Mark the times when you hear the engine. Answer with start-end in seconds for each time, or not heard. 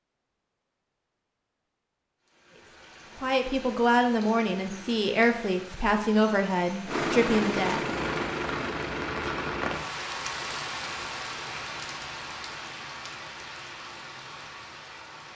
6.8-9.8.